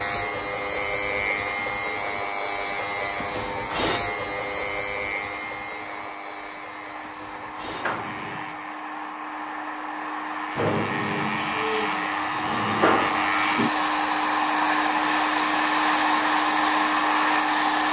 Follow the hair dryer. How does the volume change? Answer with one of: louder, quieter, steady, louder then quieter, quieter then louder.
louder.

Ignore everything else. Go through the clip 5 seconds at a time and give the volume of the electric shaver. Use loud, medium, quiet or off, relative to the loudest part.
loud, medium, loud, off.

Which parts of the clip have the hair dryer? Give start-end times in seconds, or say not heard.
0.2-17.8.